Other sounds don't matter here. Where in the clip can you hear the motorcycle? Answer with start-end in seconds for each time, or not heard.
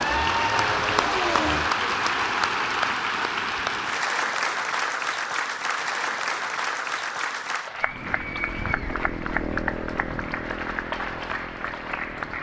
0.0-1.7, 7.8-12.3.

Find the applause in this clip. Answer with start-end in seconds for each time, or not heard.
0.0-12.3.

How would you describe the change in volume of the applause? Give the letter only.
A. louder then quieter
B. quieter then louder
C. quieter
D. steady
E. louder
C.